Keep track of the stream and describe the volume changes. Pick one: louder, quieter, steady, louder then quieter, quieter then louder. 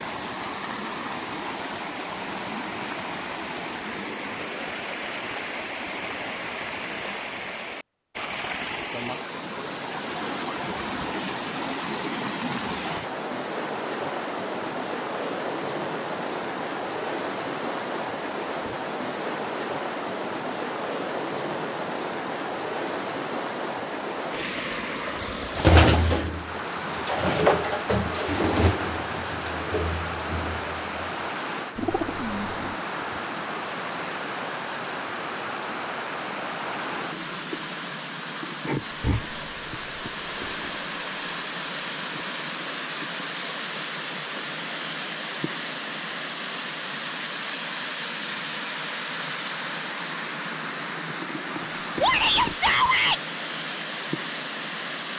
steady.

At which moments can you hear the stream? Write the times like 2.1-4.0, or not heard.
0.0-55.1.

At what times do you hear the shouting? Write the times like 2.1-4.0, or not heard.
52.0-53.2.